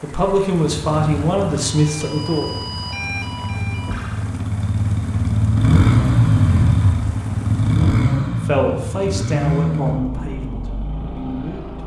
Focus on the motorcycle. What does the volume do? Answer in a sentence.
The volume of the motorcycle goes up, then down.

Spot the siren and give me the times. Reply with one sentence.
The siren can be heard from 1.6 to 4.3 s.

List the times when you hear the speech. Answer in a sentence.
The speech can be heard from 0.0 to 2.5 s and from 8.4 to 11.8 s.